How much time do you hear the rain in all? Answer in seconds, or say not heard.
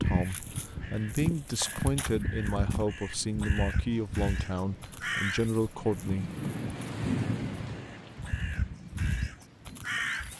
10 s.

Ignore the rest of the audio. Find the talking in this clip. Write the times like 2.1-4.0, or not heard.
0.0-6.3.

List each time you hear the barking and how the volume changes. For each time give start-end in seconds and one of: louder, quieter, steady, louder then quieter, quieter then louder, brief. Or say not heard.
not heard.